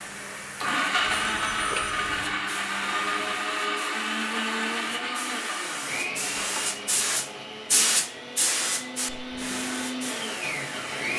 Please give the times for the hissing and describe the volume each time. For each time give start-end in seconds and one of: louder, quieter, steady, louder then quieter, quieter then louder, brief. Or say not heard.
0.0-11.1 louder then quieter.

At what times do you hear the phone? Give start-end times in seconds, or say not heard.
1.0-2.4.